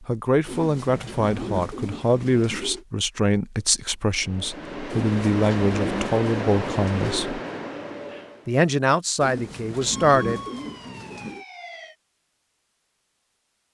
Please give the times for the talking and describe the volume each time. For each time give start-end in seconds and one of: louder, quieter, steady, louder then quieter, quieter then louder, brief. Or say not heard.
0.0-7.4 steady
8.4-10.4 brief.